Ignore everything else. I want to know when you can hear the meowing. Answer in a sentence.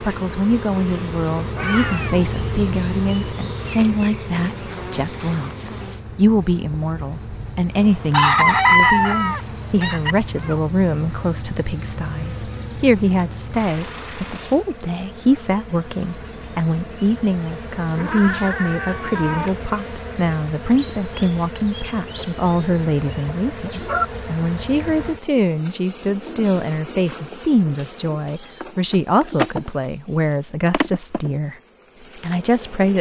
The meowing can be heard from 1.6 to 2.2 s, from 17.9 to 19.5 s and from 28.4 to 30.3 s.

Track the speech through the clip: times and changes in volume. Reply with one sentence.
You can hear the speech from 0.0 to 31.6 s, at a steady volume; and briefly from 32.1 to 32.9 s.